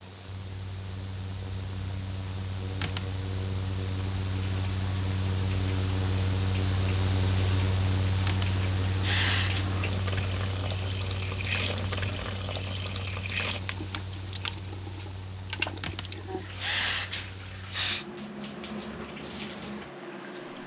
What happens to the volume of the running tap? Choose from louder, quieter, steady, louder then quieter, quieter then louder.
louder then quieter.